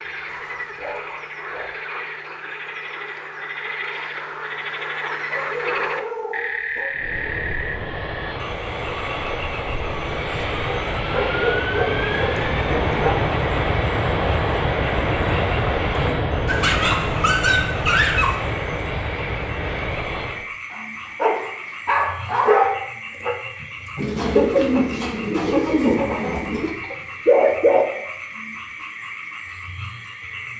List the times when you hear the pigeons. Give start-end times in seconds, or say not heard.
23.9-26.8.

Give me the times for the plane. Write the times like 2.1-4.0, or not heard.
6.9-20.5.